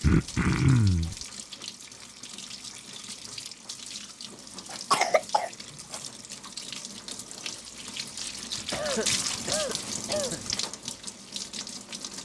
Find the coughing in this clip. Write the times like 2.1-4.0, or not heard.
0.0-1.1, 4.7-6.0, 8.6-10.6.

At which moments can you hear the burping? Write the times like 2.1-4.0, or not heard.
not heard.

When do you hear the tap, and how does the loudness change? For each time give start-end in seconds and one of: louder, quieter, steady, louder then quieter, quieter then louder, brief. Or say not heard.
0.0-12.1 louder.